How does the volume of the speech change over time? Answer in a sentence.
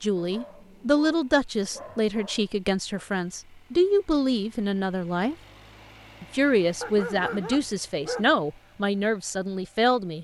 The loudness of the speech stays about the same.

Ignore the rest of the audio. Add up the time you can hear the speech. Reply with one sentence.
The speech can be heard for 9 seconds in total.